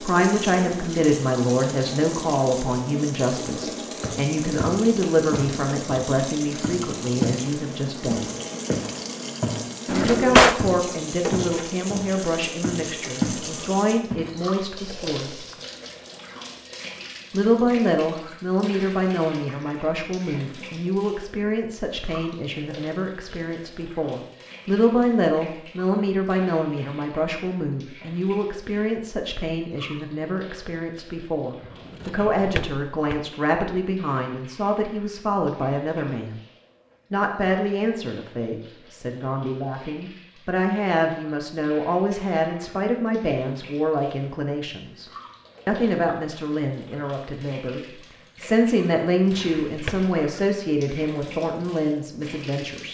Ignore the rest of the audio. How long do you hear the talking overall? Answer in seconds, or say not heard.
49 s.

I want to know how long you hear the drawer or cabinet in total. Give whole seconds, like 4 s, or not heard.
3 s.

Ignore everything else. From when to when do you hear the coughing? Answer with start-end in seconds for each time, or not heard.
not heard.